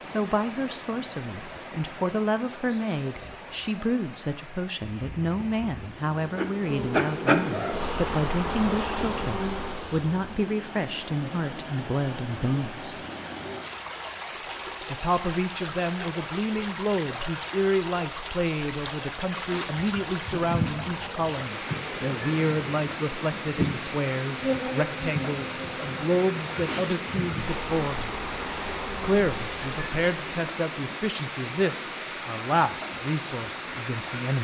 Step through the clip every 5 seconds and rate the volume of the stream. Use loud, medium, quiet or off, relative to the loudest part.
medium, medium, loud, loud, loud, loud, loud.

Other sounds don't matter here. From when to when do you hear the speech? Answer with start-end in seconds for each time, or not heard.
0.1-13.1, 14.9-28.1, 29.0-34.4.